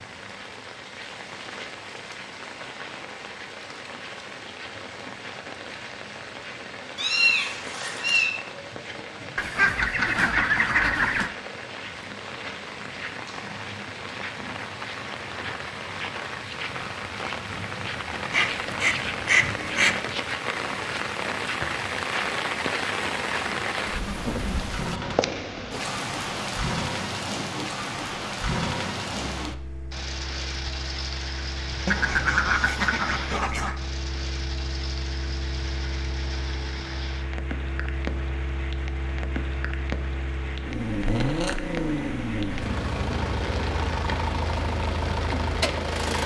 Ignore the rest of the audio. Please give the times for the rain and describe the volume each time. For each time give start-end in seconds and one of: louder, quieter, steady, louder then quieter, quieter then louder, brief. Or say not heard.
0.0-46.0 louder then quieter.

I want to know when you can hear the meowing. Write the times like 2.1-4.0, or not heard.
7.0-8.3.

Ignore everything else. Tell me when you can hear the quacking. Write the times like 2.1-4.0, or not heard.
9.3-11.3, 18.3-20.0, 31.9-33.8.